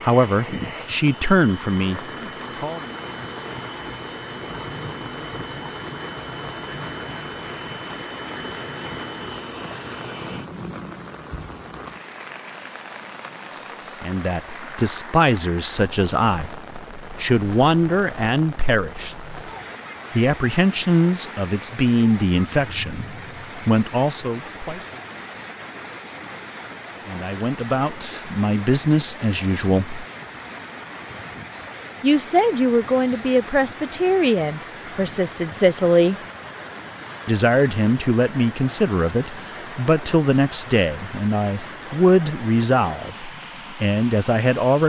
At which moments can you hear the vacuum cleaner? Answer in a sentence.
The vacuum cleaner can be heard from 0.0 to 10.5 s.